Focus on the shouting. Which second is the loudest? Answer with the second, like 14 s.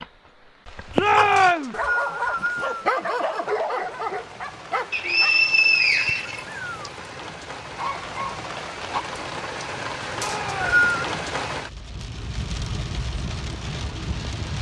1 s.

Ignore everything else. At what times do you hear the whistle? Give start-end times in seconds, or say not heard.
1.4-2.8, 4.9-6.9, 10.2-11.0.